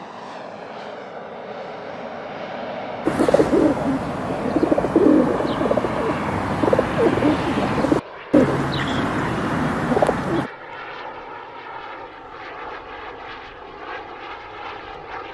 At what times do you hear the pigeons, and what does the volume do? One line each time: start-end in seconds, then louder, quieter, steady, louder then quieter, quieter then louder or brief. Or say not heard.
3.0-10.5 steady.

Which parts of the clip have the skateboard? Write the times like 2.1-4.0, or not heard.
not heard.